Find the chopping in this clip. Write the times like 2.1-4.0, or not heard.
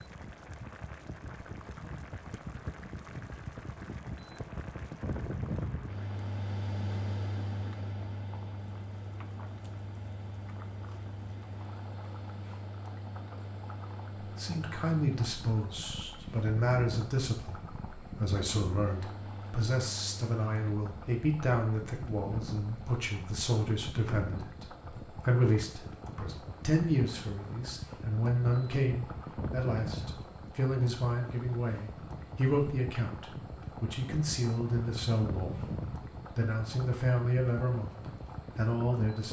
not heard.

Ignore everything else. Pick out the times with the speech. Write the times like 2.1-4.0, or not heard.
14.2-35.6, 36.4-39.2.